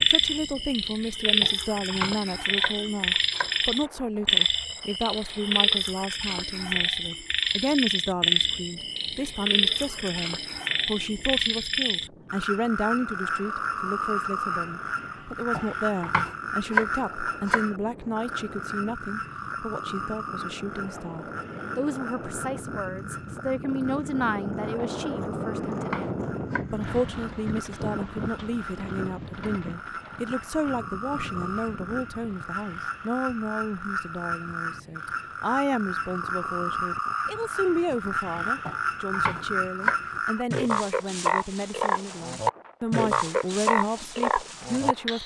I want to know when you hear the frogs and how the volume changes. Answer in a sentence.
You can hear the frogs from 0.0 to 45.2 s, getting quieter then louder.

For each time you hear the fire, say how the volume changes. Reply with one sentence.
You can't hear the fire here.